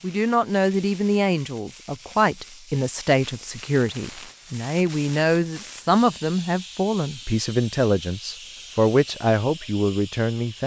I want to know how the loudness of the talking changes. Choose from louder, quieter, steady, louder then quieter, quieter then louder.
steady.